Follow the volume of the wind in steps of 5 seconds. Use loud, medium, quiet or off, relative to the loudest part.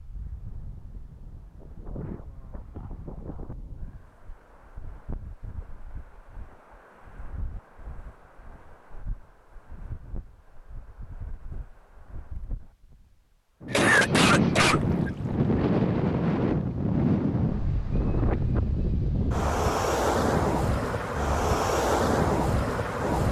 quiet, quiet, medium, loud, loud.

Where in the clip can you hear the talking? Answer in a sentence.
The talking can't be heard in this clip.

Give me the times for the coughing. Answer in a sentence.
The coughing can be heard from 13.7 to 15.3 s.